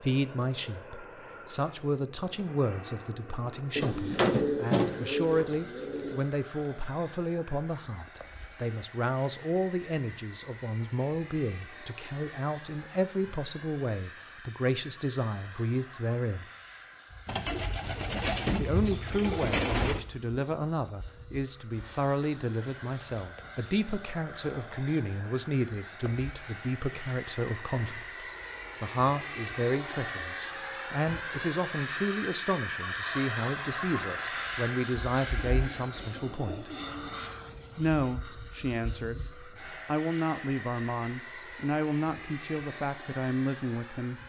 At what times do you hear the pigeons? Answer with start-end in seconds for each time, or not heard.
3.8-6.2, 17.2-20.0, 35.5-37.2.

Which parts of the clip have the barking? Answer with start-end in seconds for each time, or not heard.
not heard.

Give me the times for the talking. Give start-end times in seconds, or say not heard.
0.0-16.4, 18.6-36.7, 37.8-44.2.